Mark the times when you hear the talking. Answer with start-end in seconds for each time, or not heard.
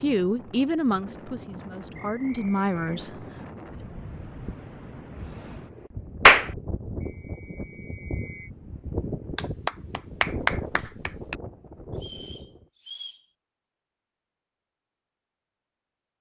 0.0-3.1.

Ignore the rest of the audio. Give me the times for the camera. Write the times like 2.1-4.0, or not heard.
not heard.